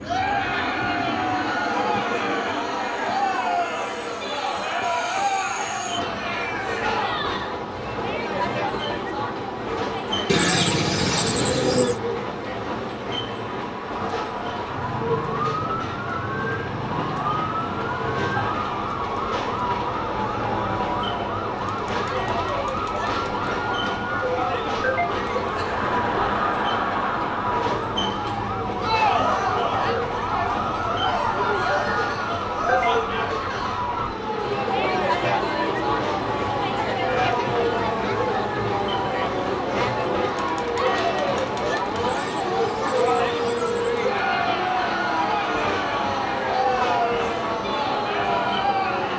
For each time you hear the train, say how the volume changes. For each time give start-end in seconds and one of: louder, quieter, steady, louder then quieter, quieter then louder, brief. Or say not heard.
0.0-49.1 steady.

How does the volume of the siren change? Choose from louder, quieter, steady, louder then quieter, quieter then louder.
steady.